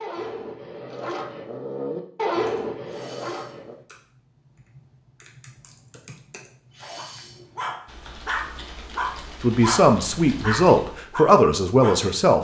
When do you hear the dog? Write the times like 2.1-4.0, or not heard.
0.0-3.8, 7.0-12.1.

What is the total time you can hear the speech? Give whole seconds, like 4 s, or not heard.
3 s.